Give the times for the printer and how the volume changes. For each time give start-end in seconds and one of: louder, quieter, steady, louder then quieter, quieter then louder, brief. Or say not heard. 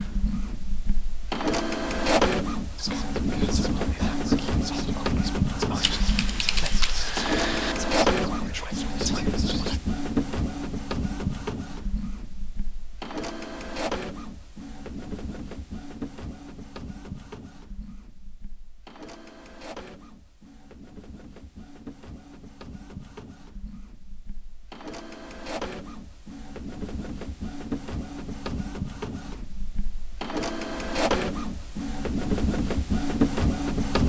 0.0-34.0 quieter then louder.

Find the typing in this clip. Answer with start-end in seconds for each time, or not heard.
5.8-7.8.